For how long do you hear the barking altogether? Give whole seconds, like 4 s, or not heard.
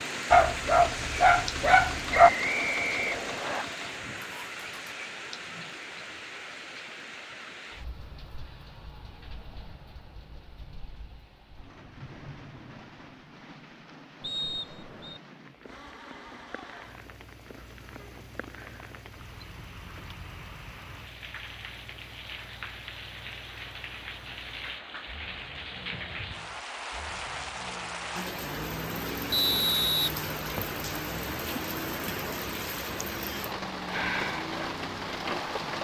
2 s.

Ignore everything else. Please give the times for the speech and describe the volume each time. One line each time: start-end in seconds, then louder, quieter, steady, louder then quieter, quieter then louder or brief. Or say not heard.
not heard.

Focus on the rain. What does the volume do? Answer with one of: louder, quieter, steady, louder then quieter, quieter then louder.
quieter then louder.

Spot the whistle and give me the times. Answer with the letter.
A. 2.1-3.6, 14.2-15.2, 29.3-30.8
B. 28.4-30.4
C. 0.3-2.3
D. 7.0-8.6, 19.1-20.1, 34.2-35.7
A.